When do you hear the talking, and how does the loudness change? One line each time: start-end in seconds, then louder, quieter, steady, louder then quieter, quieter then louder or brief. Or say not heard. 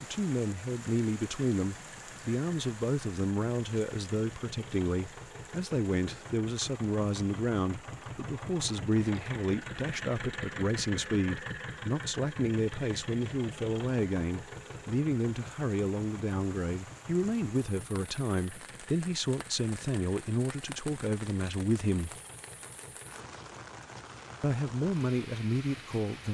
0.0-22.1 steady
24.4-26.2 brief.